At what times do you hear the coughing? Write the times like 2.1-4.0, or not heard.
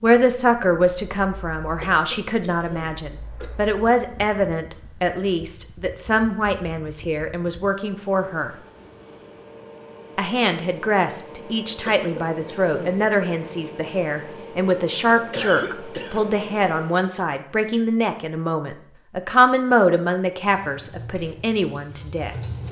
1.8-3.5, 11.8-13.1, 15.2-16.4.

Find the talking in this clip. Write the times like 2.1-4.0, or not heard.
0.0-8.5, 10.2-22.3.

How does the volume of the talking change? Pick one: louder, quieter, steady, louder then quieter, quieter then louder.
steady.